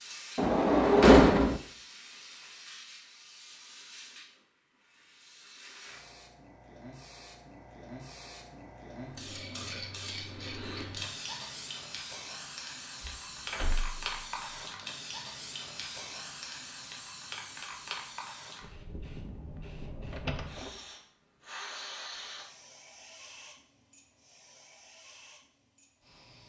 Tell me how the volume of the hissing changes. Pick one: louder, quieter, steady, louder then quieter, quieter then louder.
louder then quieter.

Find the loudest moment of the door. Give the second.
1 s.